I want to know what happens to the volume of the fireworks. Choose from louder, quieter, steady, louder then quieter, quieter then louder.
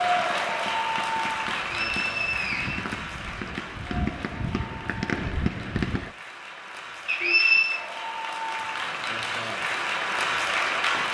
louder.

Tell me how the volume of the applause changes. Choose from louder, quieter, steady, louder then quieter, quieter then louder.
quieter then louder.